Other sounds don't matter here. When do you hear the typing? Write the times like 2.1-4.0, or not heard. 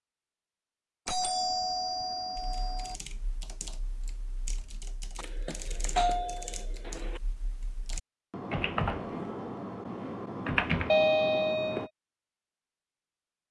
2.4-11.9.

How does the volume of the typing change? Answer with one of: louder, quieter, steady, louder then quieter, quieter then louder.
louder.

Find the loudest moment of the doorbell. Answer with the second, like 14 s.
11 s.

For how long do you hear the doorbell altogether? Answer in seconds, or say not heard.
5 s.